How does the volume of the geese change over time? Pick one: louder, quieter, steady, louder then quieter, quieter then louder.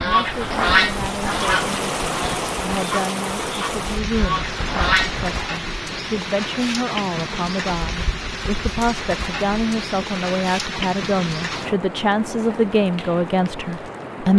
quieter then louder.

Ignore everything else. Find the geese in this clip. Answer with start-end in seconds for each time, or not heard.
0.0-5.5.